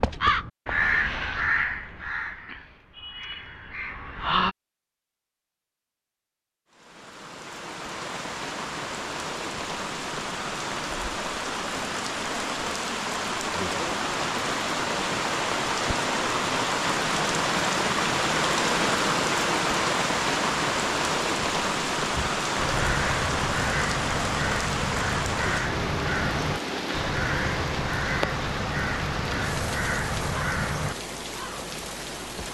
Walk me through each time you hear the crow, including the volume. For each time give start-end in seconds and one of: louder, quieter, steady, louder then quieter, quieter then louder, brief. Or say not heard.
0.0-4.5 quieter
22.1-30.9 steady.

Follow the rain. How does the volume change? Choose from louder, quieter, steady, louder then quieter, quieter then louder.
louder then quieter.